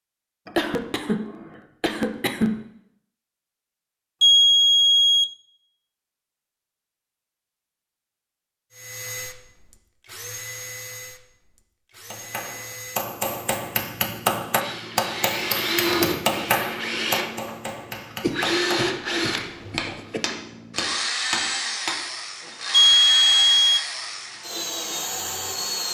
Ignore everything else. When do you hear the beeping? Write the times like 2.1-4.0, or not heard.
4.2-5.3, 22.7-23.9.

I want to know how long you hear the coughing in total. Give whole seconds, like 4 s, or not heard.
4 s.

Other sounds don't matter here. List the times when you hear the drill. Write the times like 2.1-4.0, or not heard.
8.7-25.9.